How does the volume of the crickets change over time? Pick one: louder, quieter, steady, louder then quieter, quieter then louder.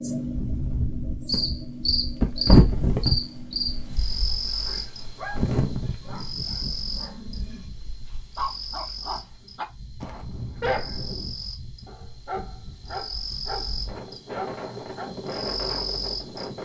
quieter then louder.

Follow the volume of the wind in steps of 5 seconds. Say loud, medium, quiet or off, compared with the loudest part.
loud, medium, quiet, medium.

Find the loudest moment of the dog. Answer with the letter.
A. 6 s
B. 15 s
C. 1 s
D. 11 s
D.